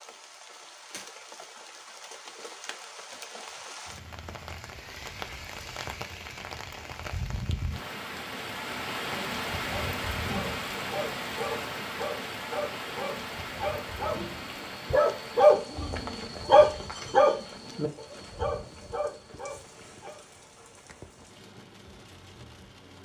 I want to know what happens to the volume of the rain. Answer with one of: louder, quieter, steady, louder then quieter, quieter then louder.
louder then quieter.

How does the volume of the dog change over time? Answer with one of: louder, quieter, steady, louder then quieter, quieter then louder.
louder then quieter.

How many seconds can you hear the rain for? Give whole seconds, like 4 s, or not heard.
23 s.